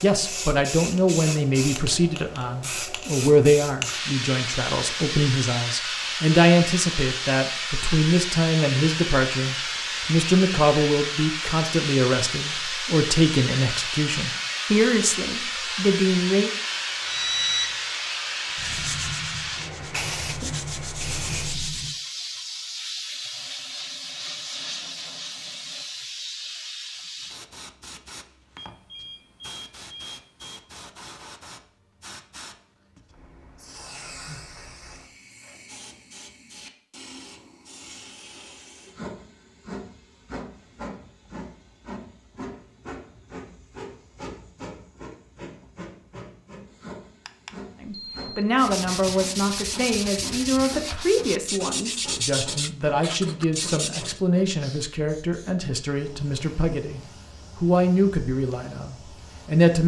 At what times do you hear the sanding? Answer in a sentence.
You can hear the sanding from 18.5 to 22.0 s and from 48.5 to 54.2 s.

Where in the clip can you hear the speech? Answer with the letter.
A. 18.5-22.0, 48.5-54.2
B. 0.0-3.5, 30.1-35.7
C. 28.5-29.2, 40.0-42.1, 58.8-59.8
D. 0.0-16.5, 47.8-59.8
D.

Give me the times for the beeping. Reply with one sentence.
You can hear the beeping from 17.0 to 17.8 s, from 28.6 to 30.6 s and from 47.2 to 48.3 s.